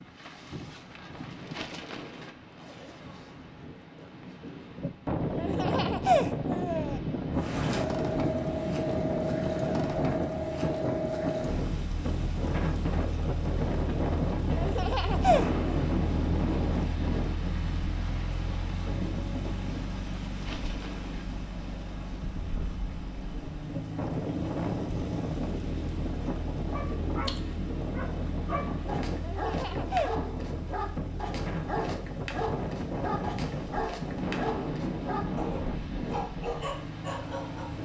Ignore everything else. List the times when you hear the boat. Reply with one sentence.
The boat can be heard from 7.3 to 37.8 s.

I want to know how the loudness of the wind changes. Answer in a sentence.
The volume of the wind stays about the same.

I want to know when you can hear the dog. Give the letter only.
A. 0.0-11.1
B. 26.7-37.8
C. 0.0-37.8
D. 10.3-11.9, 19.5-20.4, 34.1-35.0
B.